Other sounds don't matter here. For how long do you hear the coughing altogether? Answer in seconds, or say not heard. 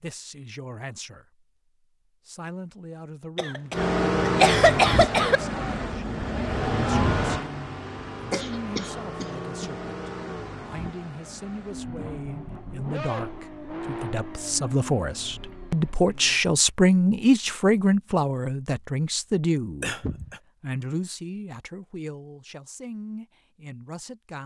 4 s.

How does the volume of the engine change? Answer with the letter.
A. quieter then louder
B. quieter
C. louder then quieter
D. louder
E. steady
B.